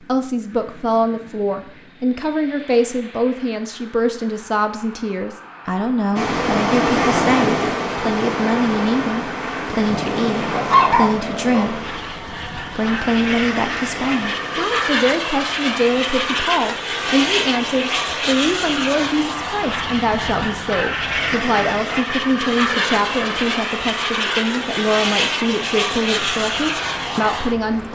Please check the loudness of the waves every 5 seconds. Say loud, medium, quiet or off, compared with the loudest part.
off, loud, medium, quiet, quiet, quiet.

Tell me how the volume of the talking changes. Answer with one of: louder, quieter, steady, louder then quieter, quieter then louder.
steady.